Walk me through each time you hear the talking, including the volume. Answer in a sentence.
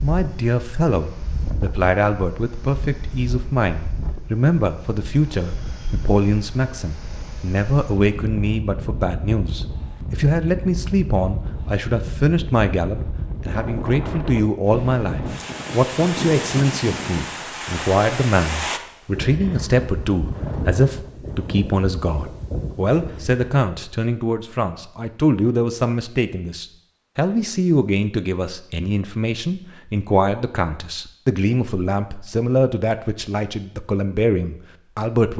You can hear the talking from 0.0 to 35.3 s, at a steady volume.